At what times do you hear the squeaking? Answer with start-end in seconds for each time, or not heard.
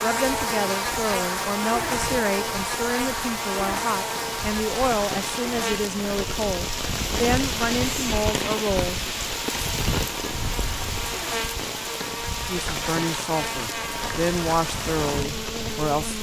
10.3-11.1.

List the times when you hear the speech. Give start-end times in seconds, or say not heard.
0.0-9.1, 12.4-16.1.